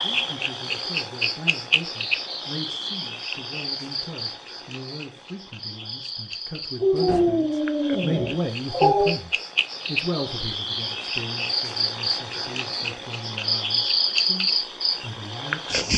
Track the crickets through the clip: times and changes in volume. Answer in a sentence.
You can hear the crickets from 0.0 to 15.9 s, getting quieter then louder.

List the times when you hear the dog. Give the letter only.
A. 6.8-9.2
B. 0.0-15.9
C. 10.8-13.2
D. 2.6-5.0
A.